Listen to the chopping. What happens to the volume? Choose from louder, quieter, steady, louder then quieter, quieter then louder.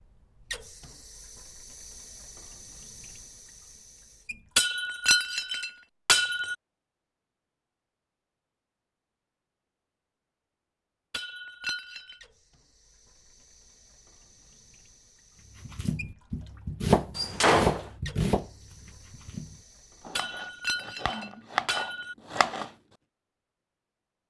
quieter then louder.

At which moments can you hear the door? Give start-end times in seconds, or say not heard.
17.1-17.9.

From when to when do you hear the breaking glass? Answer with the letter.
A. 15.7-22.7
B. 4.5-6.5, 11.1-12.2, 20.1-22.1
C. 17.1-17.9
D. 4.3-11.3
B.